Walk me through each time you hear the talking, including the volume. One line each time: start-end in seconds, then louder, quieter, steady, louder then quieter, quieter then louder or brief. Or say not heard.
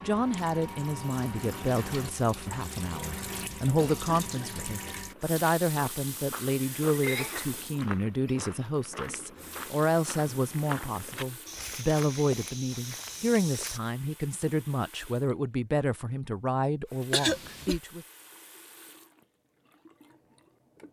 0.0-18.1 steady.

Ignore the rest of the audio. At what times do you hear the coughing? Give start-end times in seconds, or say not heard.
3.8-5.0, 7.0-7.5, 17.1-17.8.